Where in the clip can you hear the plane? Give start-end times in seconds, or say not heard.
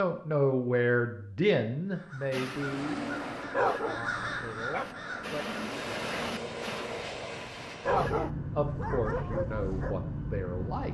2.5-10.9.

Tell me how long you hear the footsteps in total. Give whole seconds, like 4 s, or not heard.
not heard.